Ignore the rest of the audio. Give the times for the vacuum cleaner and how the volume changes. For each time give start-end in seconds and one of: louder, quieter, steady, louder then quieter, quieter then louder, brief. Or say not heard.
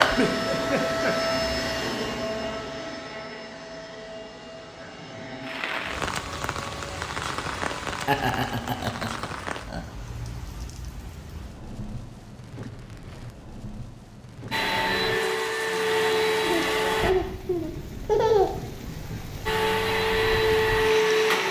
0.0-8.2 quieter
14.5-17.1 brief
19.4-21.4 brief.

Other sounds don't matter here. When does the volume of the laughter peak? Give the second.
18 s.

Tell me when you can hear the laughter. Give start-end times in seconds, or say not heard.
0.1-1.1, 8.1-9.8, 16.4-19.1.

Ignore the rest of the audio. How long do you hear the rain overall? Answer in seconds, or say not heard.
16 s.